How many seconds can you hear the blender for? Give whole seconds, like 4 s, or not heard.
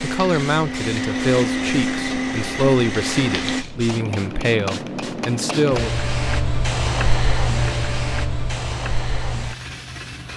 4 s.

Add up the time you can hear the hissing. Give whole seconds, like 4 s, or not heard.
10 s.